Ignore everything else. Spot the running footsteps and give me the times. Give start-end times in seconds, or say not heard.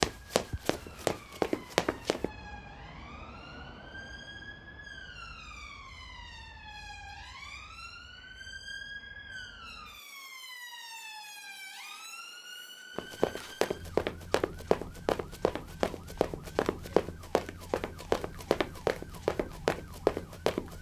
0.0-2.3, 12.9-20.7.